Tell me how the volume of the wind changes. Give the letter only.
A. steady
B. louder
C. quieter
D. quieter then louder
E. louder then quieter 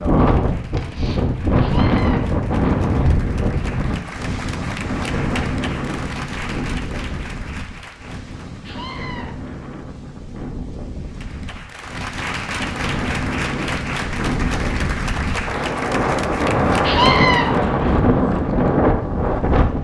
D.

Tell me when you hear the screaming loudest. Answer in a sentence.
The volume of the screaming peaks at 17 seconds.